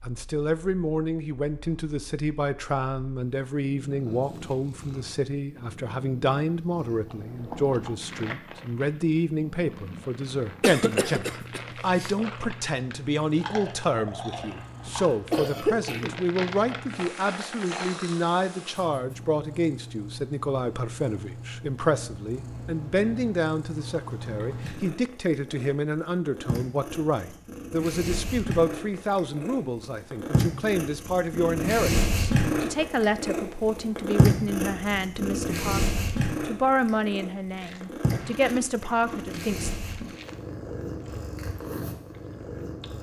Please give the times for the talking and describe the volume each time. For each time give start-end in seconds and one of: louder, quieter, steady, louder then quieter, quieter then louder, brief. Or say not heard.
0.0-39.7 steady.